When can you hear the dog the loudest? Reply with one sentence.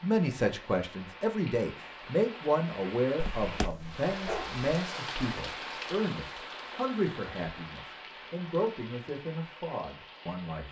The volume of the dog peaks at 4 seconds.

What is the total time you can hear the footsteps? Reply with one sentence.
The footsteps can't be heard in this clip.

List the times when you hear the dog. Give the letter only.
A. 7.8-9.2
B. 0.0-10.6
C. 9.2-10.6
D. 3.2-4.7
D.